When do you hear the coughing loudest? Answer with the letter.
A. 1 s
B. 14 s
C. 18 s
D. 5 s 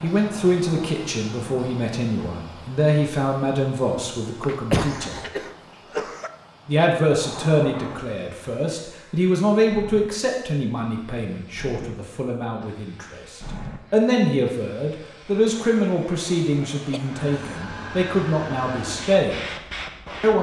D.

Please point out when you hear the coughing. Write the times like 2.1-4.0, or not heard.
4.5-6.3, 16.9-17.6.